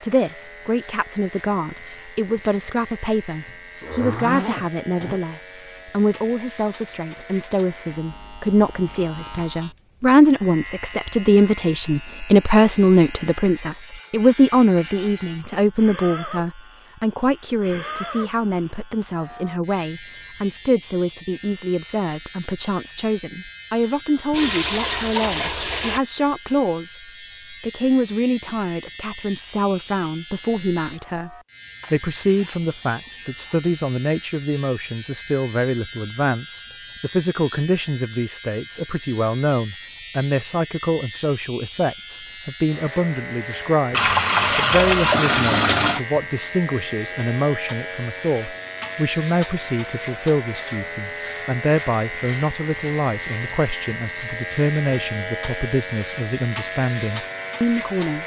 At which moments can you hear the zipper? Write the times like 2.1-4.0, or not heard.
3.8-5.2, 31.8-33.6.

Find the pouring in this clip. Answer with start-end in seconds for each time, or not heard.
24.3-26.0, 43.9-46.0.